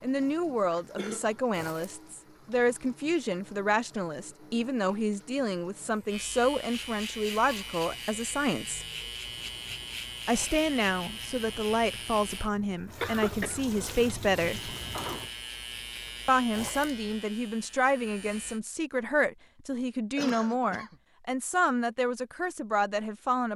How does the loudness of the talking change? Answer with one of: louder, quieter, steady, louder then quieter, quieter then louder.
steady.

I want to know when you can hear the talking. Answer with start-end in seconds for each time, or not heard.
0.0-8.8, 10.2-14.8, 16.2-23.5.